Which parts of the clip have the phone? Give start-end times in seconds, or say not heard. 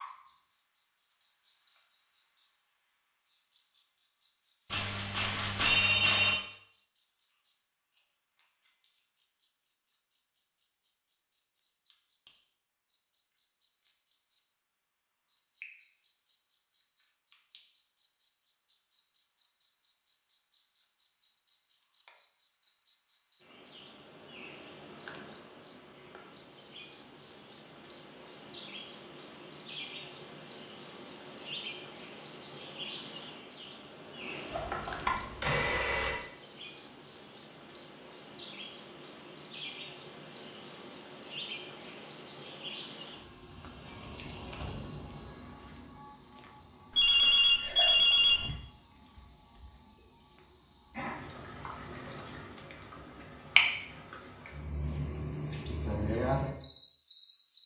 4.7-6.4, 34.5-36.1, 46.9-48.5.